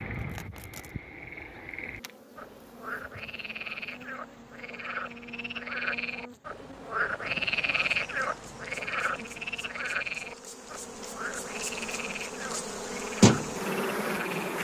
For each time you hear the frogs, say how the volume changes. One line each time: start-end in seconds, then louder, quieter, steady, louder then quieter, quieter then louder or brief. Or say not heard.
0.0-14.6 louder then quieter.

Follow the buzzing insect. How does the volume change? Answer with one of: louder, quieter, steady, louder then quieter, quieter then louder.
louder.